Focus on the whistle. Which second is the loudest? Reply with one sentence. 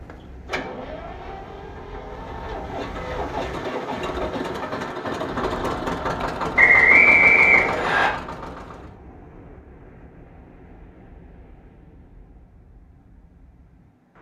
The loudest moment of the whistle is at 7 seconds.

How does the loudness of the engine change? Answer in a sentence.
The volume of the engine goes up.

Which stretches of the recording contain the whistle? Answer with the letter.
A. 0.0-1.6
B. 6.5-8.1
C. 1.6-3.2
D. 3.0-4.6
B.